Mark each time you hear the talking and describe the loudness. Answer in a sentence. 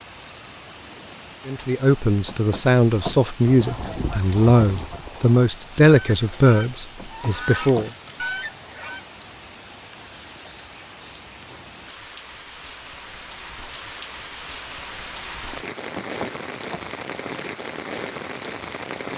You can hear the talking from 1.4 to 7.9 s, at a steady volume.